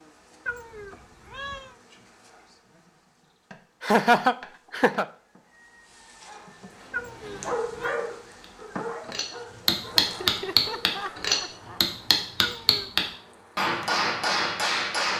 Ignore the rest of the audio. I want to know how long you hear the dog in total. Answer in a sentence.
The dog can be heard for 5 seconds in total.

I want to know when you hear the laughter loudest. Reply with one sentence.
The volume of the laughter peaks at 4 seconds.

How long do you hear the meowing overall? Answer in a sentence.
The meowing can be heard for 3 seconds in total.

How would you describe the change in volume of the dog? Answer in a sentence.
The loudness of the dog goes up, then down.